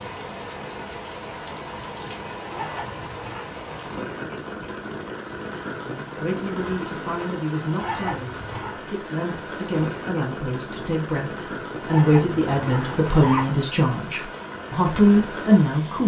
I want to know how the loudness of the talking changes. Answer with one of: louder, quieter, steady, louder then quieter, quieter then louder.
louder.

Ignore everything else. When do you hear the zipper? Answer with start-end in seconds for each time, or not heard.
2.5-3.5, 7.8-8.8, 11.8-13.6.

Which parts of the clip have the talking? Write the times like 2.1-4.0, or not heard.
5.8-16.0.